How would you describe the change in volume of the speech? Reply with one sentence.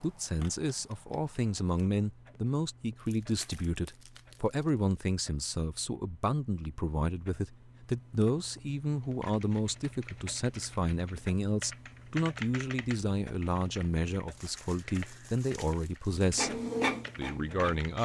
The loudness of the speech stays about the same.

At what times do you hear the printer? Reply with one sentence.
The printer can be heard from 16.2 to 18.0 s.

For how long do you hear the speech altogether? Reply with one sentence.
The speech can be heard for 18 seconds in total.